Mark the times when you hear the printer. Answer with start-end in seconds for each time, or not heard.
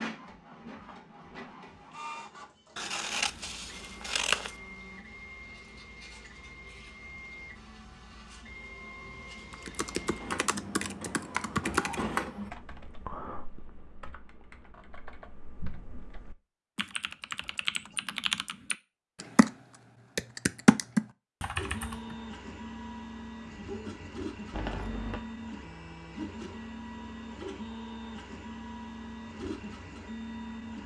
0.0-12.5, 21.6-30.8.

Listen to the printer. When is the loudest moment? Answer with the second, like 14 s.
12 s.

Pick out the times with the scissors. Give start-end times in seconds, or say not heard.
2.8-4.5, 24.5-25.2.